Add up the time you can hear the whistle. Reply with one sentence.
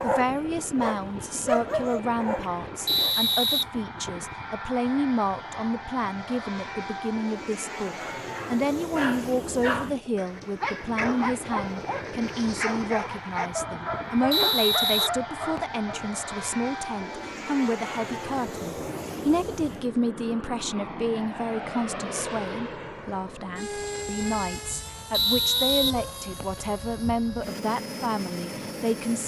You can hear the whistle for 4 seconds altogether.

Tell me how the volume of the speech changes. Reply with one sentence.
The loudness of the speech stays about the same.